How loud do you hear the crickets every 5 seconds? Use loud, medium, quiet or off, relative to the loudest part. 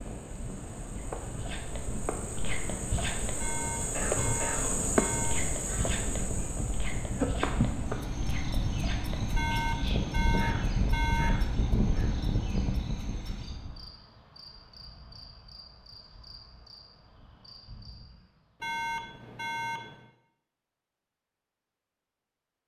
loud, loud, quiet, quiet, off.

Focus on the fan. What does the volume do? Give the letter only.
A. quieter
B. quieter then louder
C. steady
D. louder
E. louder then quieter
D.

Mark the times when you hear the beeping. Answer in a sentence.
You can hear the beeping from 3.4 to 5.5 s, from 9.3 to 11.4 s and from 18.6 to 20.1 s.